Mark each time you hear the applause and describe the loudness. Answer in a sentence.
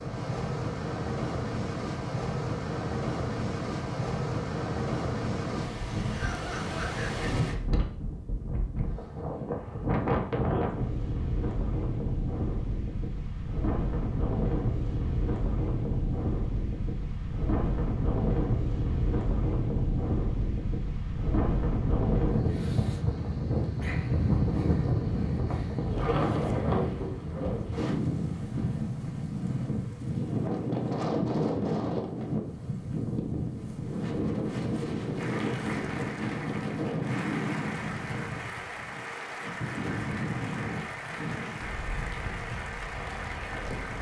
You can hear the applause from 35.1 to 43.9 s, at a steady volume.